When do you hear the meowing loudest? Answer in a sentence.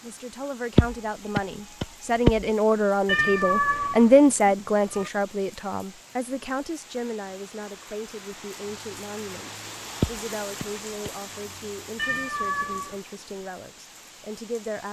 The volume of the meowing peaks at 4 seconds.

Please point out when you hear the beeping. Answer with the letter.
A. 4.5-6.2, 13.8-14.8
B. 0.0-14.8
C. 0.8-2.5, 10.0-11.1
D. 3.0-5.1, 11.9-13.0
C.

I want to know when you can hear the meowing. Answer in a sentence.
The meowing can be heard from 3.0 to 5.1 s and from 11.9 to 13.0 s.